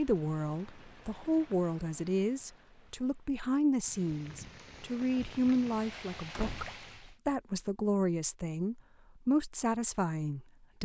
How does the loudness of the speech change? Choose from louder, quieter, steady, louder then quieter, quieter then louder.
steady.